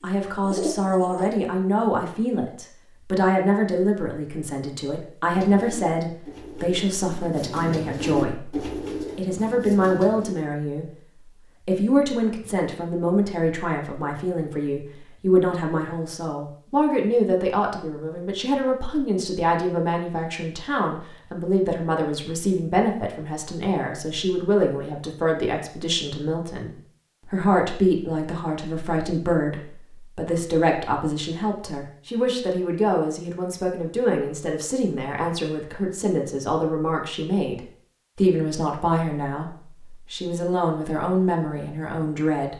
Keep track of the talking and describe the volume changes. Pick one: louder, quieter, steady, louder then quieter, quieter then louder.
steady.